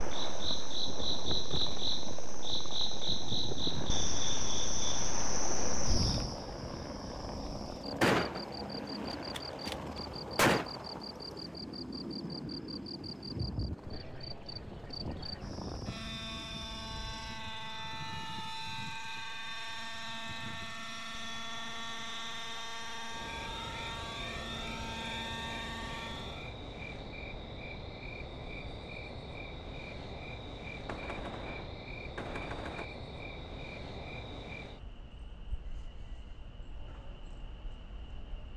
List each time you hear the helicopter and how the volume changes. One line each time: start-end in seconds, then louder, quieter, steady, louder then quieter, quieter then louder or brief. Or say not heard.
0.0-26.6 steady.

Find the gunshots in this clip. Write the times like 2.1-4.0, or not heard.
8.0-10.7, 30.9-32.9.